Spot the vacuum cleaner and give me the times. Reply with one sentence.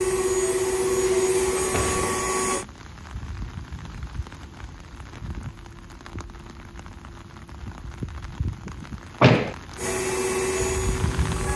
You can hear the vacuum cleaner from 0.0 to 2.6 s and from 9.8 to 11.5 s.